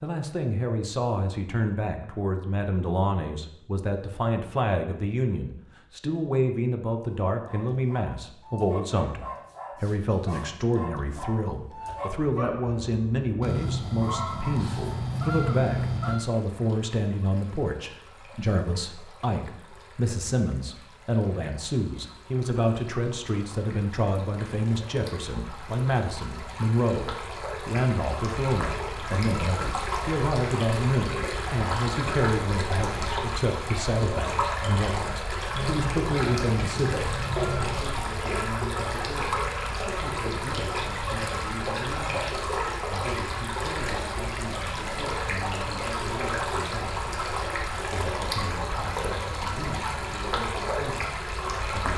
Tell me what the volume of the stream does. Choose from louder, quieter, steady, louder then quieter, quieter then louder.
louder.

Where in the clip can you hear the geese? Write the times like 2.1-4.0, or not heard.
13.4-16.2, 35.5-37.9.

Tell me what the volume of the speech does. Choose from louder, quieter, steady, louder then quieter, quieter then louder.
quieter.